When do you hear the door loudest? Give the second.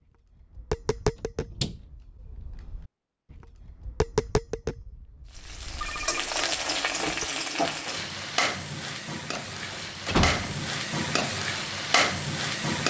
10 s.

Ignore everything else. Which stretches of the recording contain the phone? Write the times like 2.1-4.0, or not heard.
5.3-6.4.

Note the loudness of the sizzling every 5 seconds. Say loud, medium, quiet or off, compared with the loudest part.
off, loud, loud.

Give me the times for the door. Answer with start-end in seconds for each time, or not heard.
1.4-1.8, 9.3-10.7.